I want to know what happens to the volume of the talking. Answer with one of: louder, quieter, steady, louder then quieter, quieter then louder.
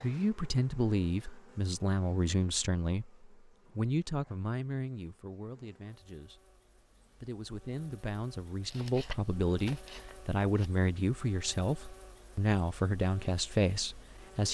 quieter then louder.